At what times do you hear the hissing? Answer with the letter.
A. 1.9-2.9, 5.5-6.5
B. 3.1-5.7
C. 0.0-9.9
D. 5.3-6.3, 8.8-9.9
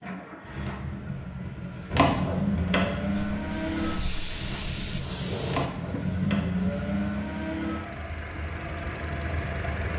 B.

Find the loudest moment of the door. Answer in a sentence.
The loudest moment of the door is at 2 seconds.